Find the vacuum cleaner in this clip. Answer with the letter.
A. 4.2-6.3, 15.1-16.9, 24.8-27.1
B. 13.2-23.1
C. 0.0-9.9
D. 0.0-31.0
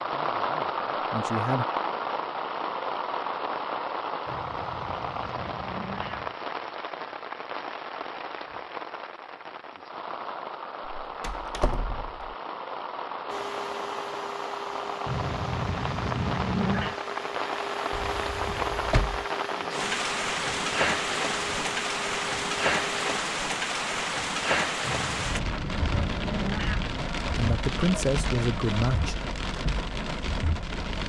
B.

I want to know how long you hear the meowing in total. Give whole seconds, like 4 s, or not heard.
6 s.